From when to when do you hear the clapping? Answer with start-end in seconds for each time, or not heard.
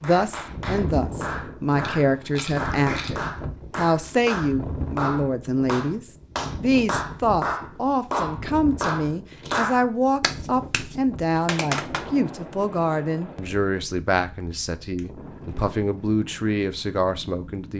0.0-12.1.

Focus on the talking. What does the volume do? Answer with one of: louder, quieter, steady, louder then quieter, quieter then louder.
steady.